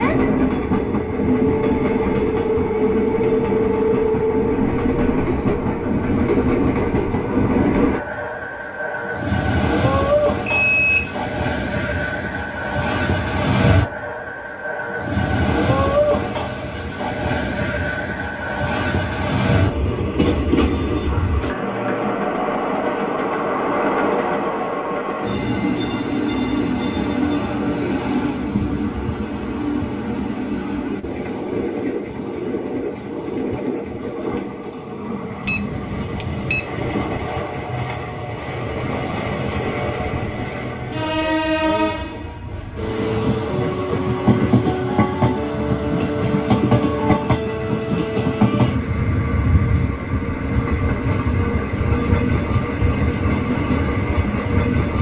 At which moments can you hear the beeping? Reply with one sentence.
The beeping can be heard from 10.4 to 11.1 s and from 35.5 to 36.7 s.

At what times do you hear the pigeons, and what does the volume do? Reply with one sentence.
You can't hear the pigeons here.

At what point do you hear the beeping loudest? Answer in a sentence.
The volume of the beeping peaks at 11 seconds.